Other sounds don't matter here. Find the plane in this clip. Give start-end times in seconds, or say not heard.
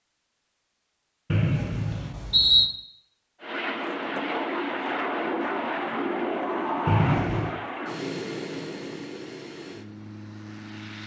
3.4-11.0.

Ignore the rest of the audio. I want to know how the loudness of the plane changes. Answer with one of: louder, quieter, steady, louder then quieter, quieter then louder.
quieter.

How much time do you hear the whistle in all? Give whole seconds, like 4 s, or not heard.
2 s.